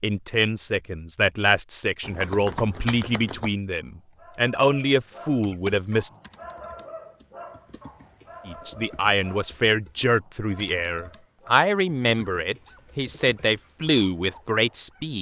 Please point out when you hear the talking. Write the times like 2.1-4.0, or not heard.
0.0-6.1, 8.4-15.1.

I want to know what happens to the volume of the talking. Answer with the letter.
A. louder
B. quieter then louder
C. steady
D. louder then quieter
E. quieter
C.